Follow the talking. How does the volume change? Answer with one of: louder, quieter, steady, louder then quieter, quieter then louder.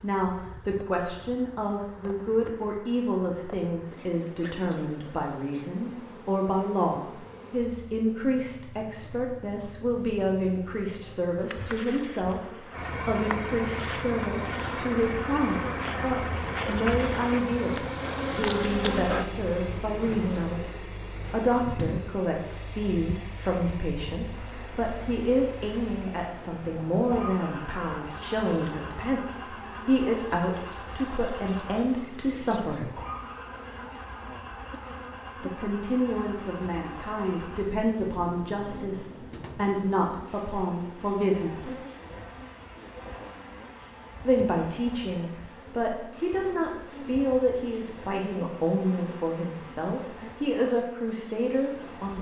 steady.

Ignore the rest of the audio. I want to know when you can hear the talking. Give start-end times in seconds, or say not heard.
0.0-33.0, 35.4-41.8, 44.2-52.1.